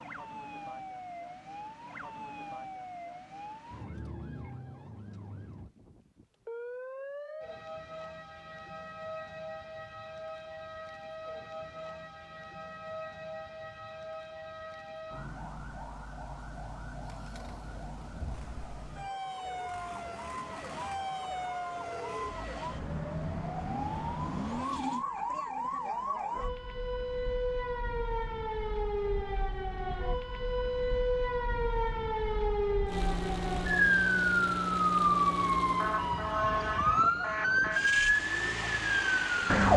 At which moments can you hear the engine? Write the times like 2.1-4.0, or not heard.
17.0-25.1, 32.9-39.7.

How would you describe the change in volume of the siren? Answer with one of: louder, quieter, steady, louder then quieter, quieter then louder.
louder.